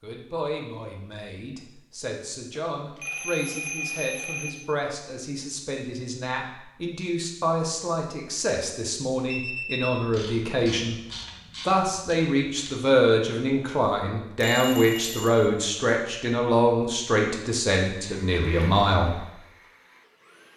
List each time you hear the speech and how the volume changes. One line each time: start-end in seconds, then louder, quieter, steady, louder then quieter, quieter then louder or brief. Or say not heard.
0.0-10.9 louder
11.7-19.2 steady.